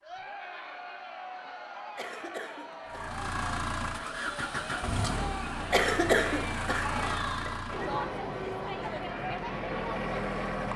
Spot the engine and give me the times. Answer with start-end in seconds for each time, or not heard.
2.9-10.7.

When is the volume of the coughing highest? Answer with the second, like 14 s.
6 s.